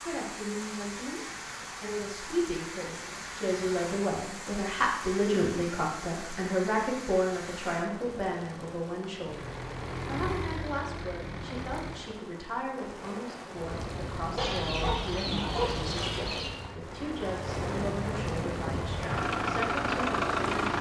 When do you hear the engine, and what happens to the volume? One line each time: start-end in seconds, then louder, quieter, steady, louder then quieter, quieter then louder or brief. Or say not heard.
9.2-12.2 brief
13.5-20.7 louder.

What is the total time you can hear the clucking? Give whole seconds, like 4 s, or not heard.
2 s.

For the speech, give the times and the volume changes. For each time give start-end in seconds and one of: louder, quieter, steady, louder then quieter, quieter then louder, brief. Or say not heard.
0.0-1.2 brief
1.8-20.7 quieter.